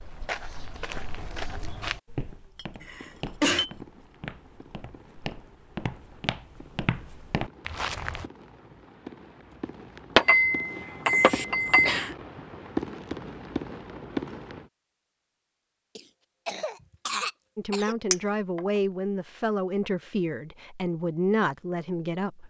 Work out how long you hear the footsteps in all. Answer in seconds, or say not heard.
8 s.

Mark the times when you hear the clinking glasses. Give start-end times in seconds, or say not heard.
2.5-3.7, 10.2-11.9, 18.1-18.6.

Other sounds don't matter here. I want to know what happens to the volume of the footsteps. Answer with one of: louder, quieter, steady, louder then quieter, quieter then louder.
quieter then louder.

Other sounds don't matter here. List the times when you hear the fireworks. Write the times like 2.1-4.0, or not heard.
2.8-14.7.